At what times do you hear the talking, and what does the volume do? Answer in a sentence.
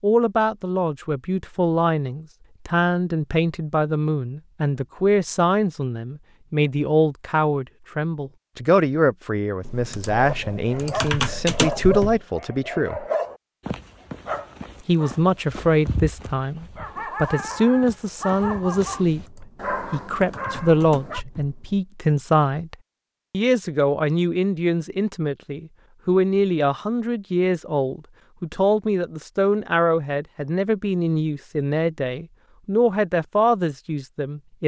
You can hear the talking from 0.0 to 13.1 s, at a steady volume; and from 14.8 to 34.6 s, at a steady volume.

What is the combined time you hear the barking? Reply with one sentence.
You can hear the barking for 11 seconds altogether.